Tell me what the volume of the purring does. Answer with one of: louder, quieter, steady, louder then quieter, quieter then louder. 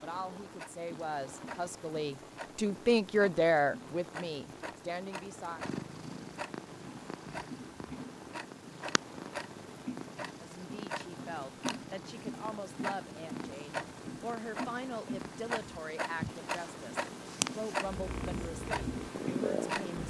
louder.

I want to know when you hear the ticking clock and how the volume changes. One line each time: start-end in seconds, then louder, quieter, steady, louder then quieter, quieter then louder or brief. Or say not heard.
0.1-20.0 louder.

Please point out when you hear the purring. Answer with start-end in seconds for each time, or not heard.
5.5-20.0.